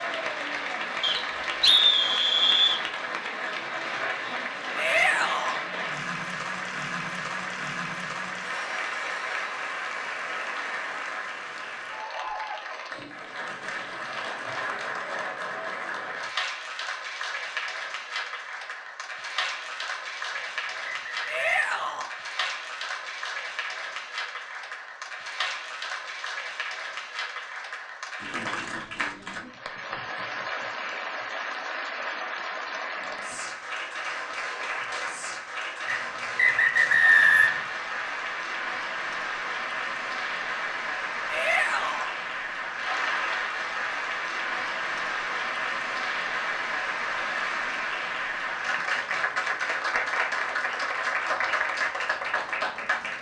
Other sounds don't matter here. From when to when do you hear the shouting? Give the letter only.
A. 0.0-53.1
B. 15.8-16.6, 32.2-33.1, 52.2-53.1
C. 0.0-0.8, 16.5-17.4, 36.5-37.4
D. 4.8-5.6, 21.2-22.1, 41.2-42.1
D.